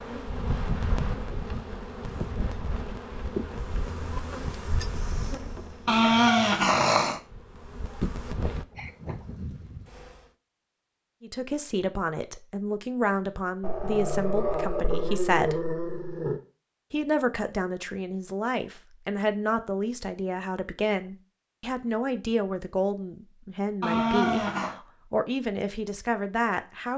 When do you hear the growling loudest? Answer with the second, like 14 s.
6 s.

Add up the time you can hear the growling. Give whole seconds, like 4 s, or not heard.
5 s.